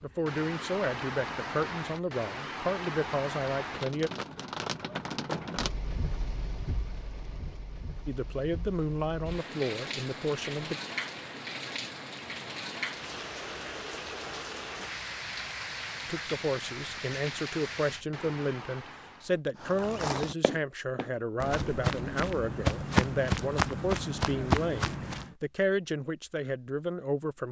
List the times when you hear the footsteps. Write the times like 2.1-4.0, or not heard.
19.6-25.4.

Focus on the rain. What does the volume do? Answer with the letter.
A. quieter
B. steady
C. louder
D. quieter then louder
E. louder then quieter
B.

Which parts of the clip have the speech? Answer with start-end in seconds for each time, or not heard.
0.0-4.1, 8.1-10.8, 16.1-27.4.